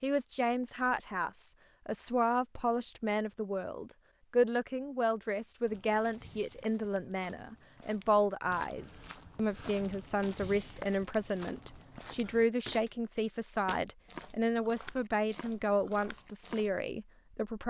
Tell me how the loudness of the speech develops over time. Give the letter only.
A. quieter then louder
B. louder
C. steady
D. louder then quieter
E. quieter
C.